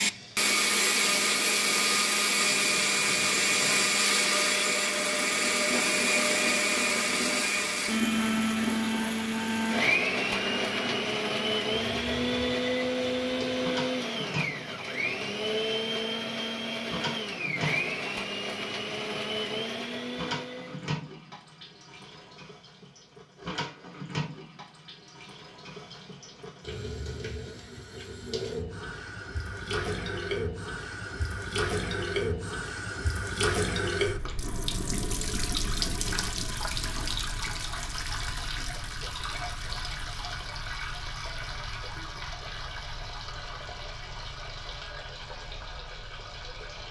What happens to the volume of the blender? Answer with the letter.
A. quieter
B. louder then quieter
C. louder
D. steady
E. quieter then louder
A.